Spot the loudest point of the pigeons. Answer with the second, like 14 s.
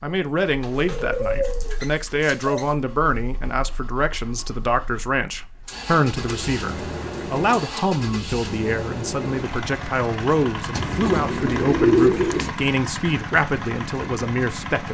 12 s.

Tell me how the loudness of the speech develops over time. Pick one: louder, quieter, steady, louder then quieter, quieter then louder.
steady.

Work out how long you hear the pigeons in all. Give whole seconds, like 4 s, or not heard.
6 s.